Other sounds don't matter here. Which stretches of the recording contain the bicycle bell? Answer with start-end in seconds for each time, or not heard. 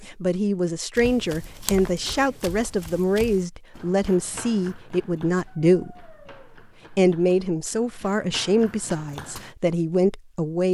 not heard.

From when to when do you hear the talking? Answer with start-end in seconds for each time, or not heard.
0.0-6.1, 6.9-10.6.